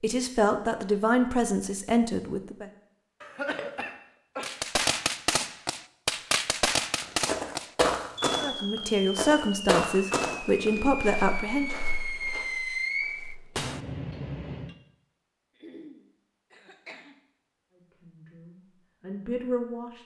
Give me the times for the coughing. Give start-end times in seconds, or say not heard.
3.2-4.5, 10.5-11.1, 15.6-17.2.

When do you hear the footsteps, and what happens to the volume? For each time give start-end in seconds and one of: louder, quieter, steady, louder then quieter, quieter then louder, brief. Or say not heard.
7.0-13.7 quieter.